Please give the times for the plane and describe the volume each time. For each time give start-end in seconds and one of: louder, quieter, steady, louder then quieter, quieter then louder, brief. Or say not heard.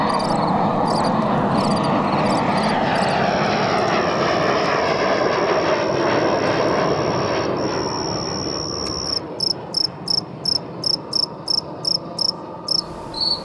0.0-13.4 quieter.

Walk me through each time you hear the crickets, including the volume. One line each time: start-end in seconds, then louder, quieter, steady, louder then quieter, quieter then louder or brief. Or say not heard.
0.0-13.4 louder.